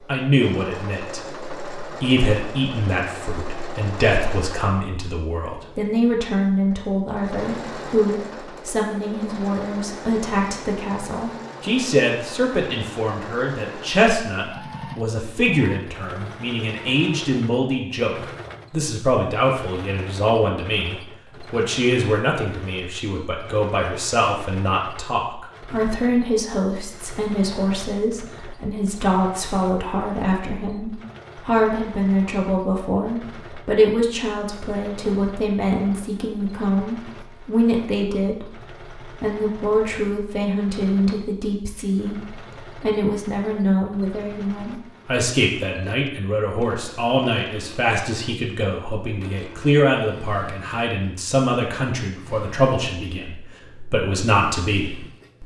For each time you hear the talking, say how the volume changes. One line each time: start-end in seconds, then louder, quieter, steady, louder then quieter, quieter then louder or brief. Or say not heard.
0.1-55.4 steady.